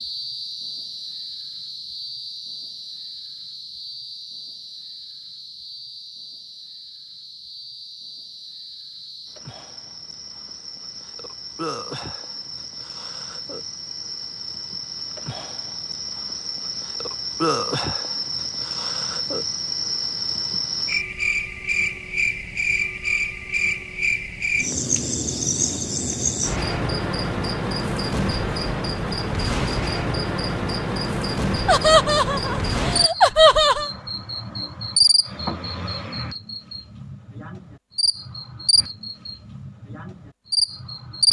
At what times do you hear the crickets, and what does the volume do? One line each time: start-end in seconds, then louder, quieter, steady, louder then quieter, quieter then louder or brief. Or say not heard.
0.0-41.2 louder.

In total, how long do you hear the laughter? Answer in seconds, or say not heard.
2 s.